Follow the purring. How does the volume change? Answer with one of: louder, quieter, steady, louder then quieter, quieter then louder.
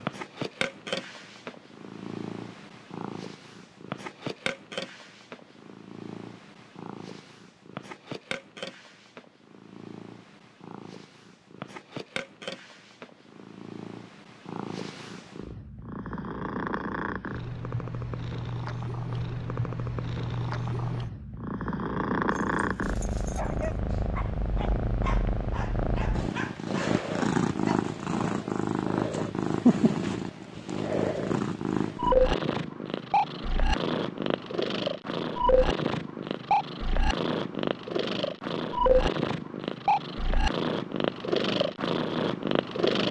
louder.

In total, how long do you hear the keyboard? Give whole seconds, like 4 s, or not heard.
not heard.